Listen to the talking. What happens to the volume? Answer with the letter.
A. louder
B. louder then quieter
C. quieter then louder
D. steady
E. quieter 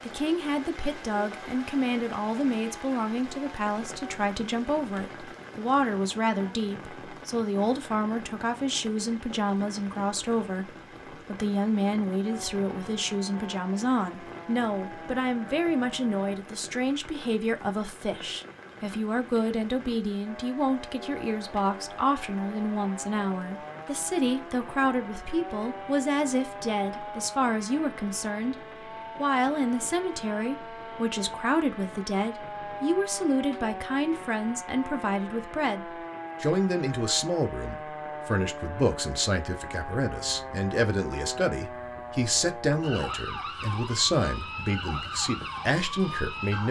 D.